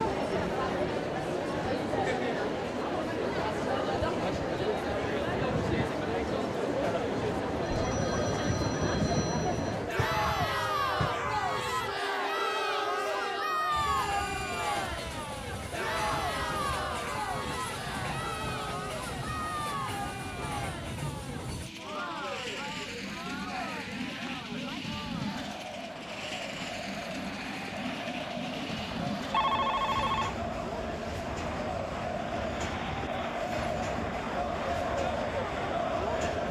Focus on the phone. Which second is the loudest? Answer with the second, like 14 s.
30 s.